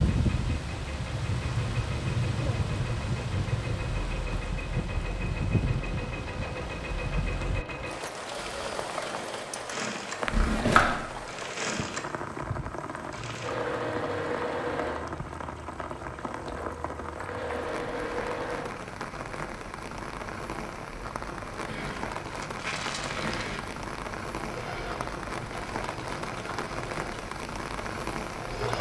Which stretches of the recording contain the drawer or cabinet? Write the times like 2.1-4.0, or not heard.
10.2-11.2.